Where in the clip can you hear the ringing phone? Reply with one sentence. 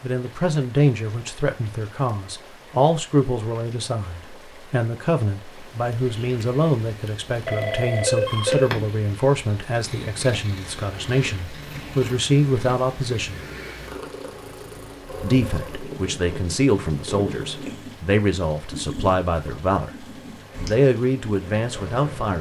You can hear the ringing phone from 7.0 to 8.7 s.